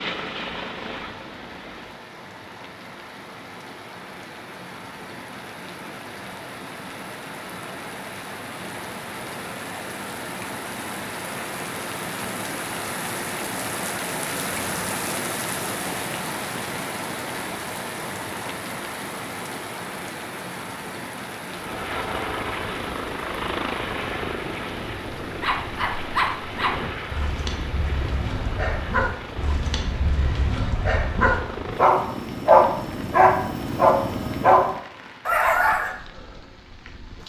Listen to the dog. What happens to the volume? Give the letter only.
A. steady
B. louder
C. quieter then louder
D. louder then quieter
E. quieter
B.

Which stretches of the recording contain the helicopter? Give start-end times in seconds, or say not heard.
0.0-2.0, 21.5-34.9.